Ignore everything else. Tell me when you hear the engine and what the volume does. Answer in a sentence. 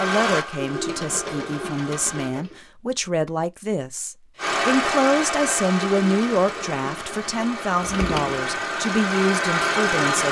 The engine can be heard briefly from 0.0 to 2.4 s; and from 4.3 to 10.2 s, getting quieter then louder.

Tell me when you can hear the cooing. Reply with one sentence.
You can hear the cooing from 0.6 to 2.6 s and from 6.0 to 8.6 s.